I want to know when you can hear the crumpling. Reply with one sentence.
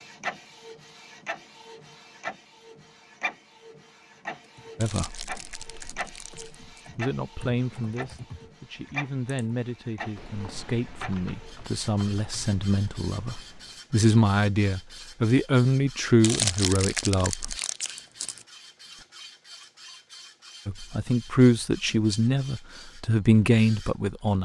You can hear the crumpling from 4.8 to 6.8 s and from 16.2 to 18.4 s.